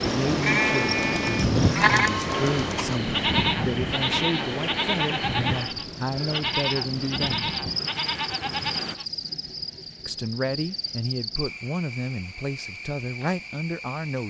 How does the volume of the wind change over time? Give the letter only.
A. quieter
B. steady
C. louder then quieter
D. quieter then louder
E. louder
A.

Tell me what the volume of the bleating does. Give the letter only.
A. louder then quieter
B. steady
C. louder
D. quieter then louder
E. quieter
E.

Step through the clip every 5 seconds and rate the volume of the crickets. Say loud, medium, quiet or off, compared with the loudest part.
loud, loud, medium.